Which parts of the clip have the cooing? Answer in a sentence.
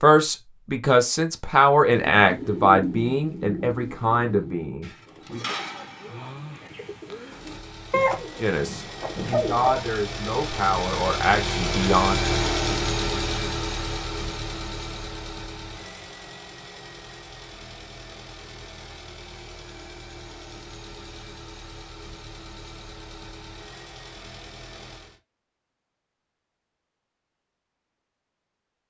The cooing can be heard from 1.9 to 9.8 s.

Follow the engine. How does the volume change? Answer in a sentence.
The volume of the engine goes up, then down.